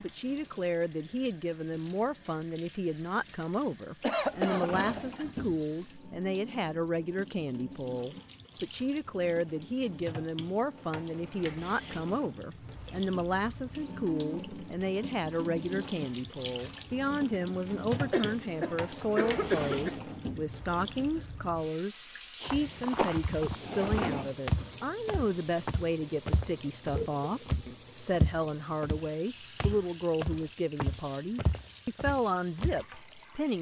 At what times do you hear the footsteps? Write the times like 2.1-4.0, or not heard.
22.4-32.9.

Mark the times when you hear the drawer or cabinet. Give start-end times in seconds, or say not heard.
4.0-5.9, 18.9-20.6, 23.3-24.4.